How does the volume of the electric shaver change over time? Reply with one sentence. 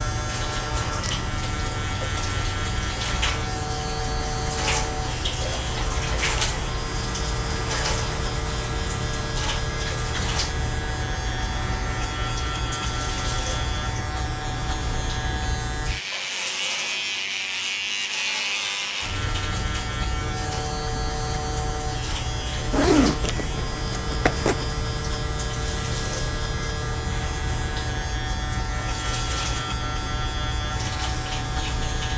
The loudness of the electric shaver stays about the same.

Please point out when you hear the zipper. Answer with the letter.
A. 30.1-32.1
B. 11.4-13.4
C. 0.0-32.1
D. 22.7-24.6
D.